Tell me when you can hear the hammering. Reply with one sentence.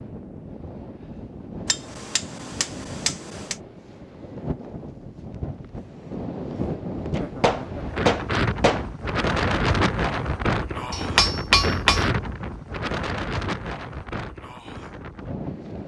The hammering can be heard from 1.6 to 3.5 s, from 7.1 to 8.8 s and from 10.9 to 12.1 s.